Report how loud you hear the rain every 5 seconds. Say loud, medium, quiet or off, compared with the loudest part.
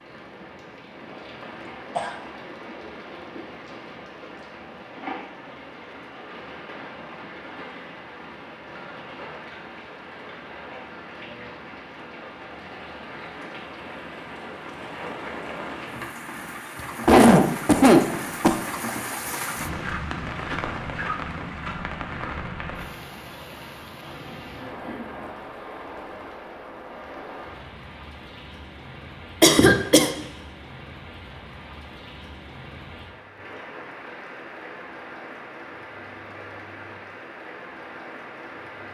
medium, medium, medium, loud, loud, medium, medium, medium.